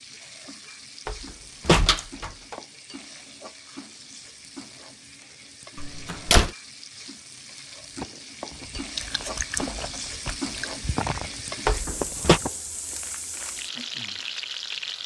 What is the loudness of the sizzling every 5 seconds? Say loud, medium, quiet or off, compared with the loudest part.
medium, medium, loud.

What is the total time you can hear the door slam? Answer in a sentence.
The door slam can be heard for 3 seconds in total.